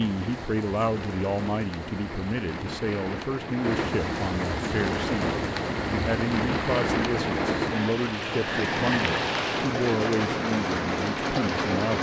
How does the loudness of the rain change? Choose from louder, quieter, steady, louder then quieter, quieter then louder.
louder.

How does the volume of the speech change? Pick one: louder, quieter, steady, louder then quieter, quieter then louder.
steady.